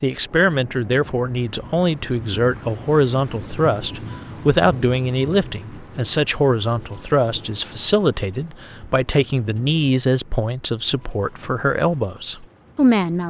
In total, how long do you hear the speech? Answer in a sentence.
You can hear the speech for 13 seconds altogether.